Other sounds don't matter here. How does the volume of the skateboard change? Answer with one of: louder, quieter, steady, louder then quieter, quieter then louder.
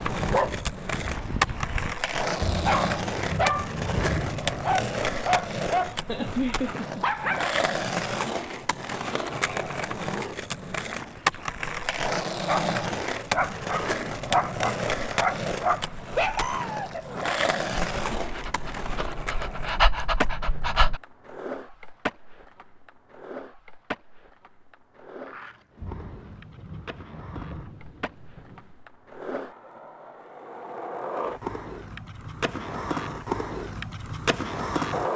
quieter then louder.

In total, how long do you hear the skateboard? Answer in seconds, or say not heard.
35 s.